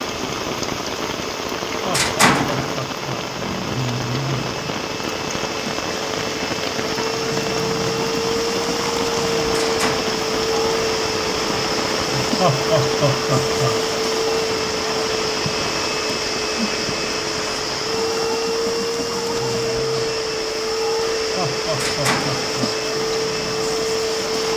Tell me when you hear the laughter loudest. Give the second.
13 s.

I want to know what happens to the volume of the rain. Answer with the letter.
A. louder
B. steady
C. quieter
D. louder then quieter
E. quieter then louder
C.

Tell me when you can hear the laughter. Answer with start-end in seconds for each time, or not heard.
1.9-3.2, 12.3-13.8, 21.4-22.8.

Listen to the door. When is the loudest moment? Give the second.
2 s.